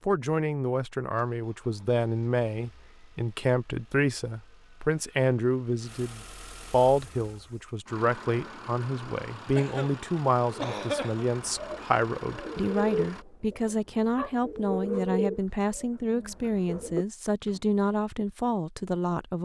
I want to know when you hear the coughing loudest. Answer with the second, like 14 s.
11 s.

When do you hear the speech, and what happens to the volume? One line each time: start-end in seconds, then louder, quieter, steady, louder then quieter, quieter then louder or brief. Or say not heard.
0.1-19.4 steady.